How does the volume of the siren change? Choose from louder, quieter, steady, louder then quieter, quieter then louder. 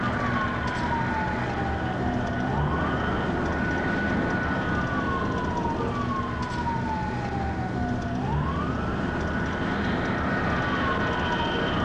steady.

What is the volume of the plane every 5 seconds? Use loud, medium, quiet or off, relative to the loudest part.
loud, medium, loud.